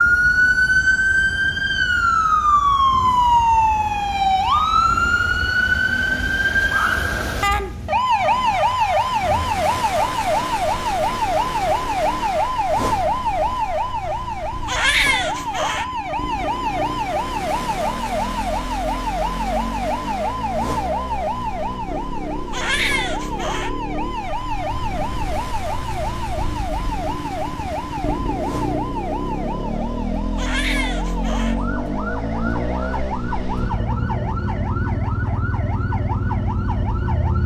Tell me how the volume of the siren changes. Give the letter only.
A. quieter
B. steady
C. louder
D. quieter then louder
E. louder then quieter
A.